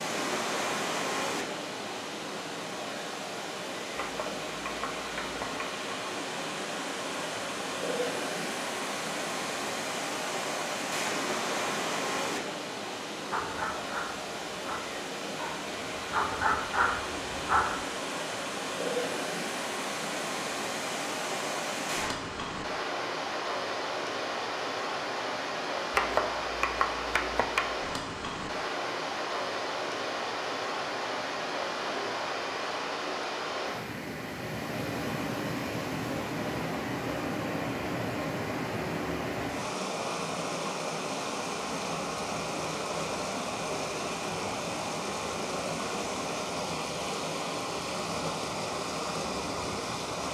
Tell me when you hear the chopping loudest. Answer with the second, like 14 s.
26 s.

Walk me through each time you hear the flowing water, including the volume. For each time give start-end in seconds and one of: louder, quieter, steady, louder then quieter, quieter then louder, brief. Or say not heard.
0.0-50.2 steady.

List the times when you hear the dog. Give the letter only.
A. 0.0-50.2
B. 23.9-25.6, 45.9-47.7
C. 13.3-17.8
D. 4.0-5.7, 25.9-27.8
C.